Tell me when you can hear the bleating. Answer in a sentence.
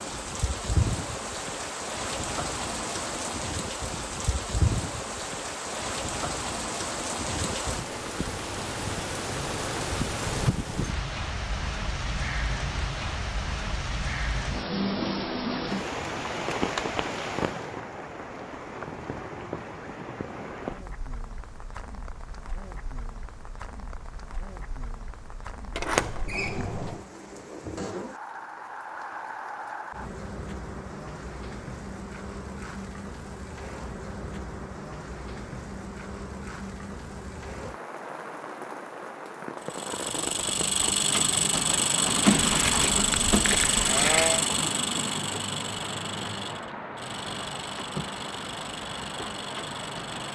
The bleating can be heard from 42.2 to 44.5 s.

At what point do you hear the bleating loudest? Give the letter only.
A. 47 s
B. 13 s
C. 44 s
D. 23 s
C.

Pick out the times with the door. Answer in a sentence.
The door can be heard from 25.7 to 27.1 s.